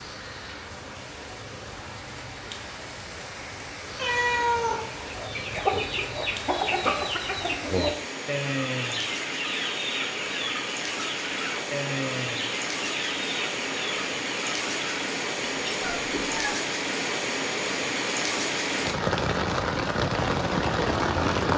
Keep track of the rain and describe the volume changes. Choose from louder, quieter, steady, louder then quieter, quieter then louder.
louder.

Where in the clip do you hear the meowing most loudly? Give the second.
4 s.